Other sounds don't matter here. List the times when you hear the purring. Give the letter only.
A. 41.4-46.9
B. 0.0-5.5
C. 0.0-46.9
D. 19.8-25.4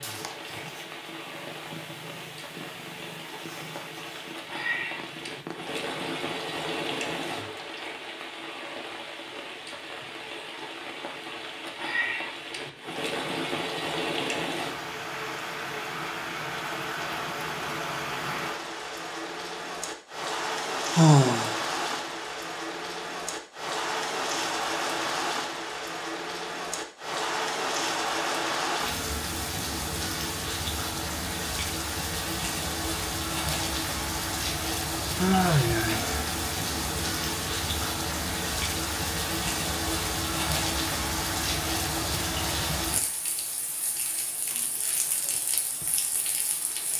B.